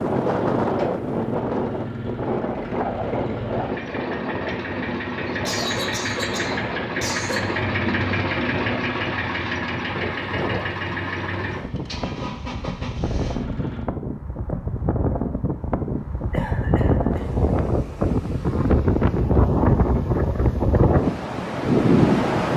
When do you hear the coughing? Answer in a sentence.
The coughing can be heard from 5.5 to 7.4 s and from 16.3 to 17.4 s.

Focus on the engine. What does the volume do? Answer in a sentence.
The volume of the engine goes up, then down.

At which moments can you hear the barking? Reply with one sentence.
The barking can't be heard in this clip.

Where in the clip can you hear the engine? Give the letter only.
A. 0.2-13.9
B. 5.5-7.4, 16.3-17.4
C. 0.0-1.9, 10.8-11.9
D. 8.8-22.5
A.